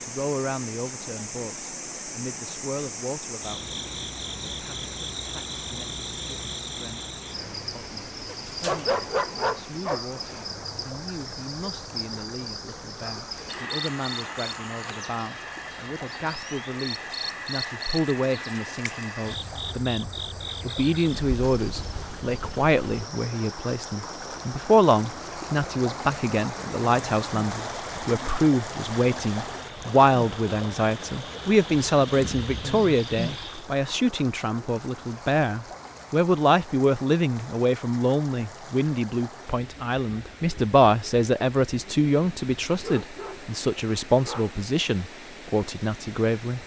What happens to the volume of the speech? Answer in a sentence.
The loudness of the speech goes up.